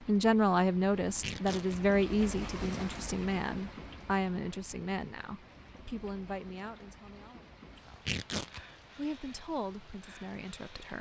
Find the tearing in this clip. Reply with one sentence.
You can hear the tearing from 1.1 to 1.8 s and from 7.9 to 8.6 s.